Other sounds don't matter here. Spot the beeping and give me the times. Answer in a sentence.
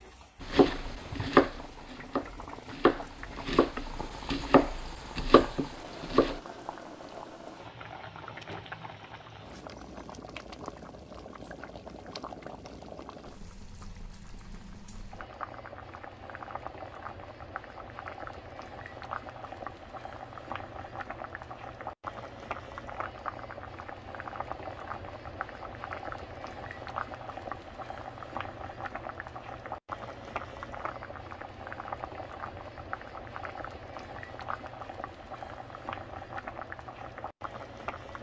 The beeping can't be heard in this clip.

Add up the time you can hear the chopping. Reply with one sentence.
You can hear the chopping for 6 seconds altogether.